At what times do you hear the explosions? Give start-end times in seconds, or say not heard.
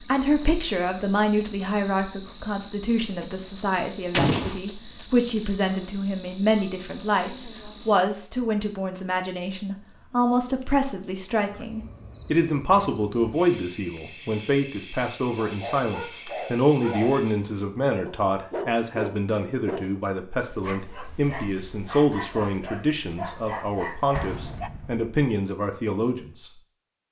4.1-4.6, 24.1-25.1.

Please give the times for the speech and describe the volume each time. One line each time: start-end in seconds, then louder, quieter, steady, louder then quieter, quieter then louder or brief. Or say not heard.
0.0-26.5 steady.